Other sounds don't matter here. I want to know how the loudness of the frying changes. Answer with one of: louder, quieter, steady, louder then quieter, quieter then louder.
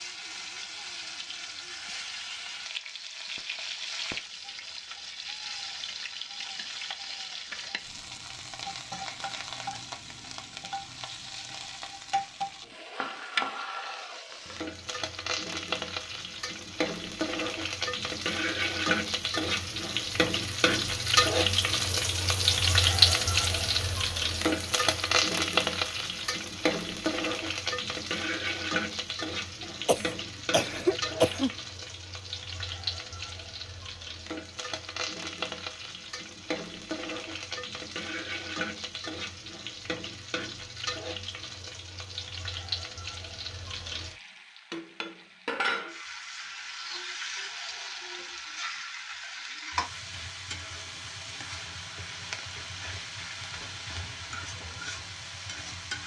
louder then quieter.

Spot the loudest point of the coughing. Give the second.
31 s.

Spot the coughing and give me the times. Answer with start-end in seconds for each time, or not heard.
29.6-31.5.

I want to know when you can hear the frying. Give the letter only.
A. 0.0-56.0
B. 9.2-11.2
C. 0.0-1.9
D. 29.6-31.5
A.